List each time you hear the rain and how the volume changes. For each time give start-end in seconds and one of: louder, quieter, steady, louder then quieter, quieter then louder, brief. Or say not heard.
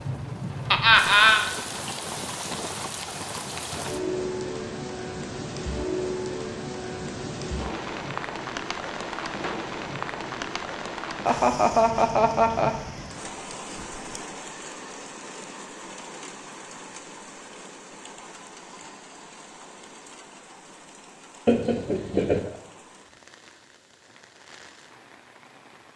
0.0-25.9 quieter.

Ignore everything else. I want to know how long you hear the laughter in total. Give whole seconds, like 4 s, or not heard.
3 s.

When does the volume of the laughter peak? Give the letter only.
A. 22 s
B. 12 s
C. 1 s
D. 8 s
C.